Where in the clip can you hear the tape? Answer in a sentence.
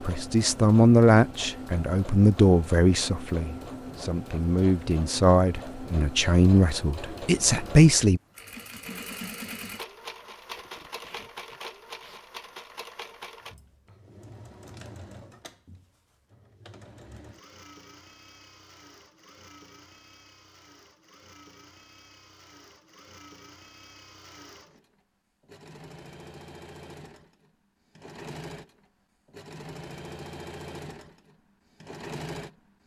You can hear the tape from 10.3 to 12.2 s.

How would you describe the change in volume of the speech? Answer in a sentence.
The volume of the speech goes down, then up.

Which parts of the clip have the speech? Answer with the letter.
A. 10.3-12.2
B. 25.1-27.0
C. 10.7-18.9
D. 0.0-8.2
D.